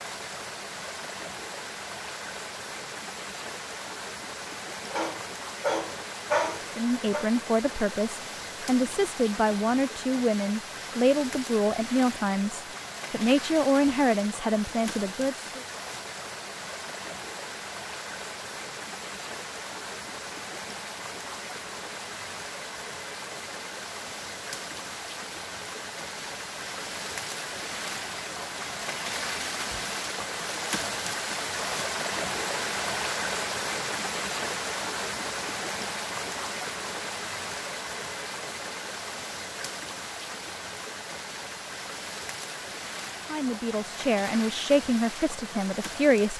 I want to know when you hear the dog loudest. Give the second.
6 s.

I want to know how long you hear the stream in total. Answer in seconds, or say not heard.
46 s.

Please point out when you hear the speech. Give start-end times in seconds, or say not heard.
6.7-15.5, 43.3-46.3.